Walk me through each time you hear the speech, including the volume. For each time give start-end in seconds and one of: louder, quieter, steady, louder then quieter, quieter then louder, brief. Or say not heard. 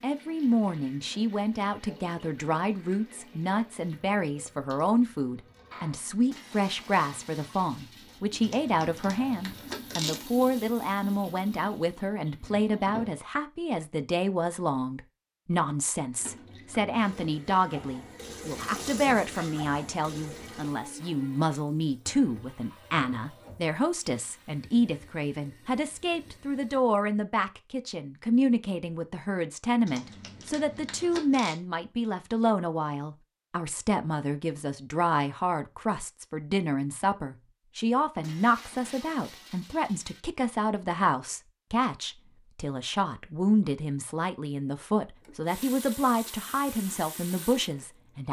0.0-48.2 steady.